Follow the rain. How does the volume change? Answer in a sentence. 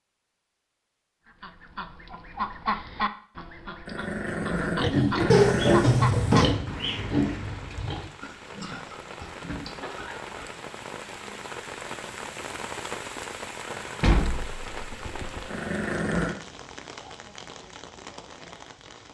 The volume of the rain goes up, then down.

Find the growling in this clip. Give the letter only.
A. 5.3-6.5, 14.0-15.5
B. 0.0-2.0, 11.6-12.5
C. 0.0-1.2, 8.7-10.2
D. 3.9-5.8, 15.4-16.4
D.